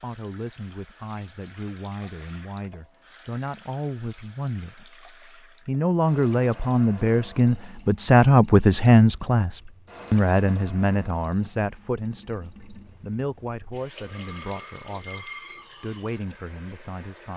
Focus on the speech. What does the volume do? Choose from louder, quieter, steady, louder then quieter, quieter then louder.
louder then quieter.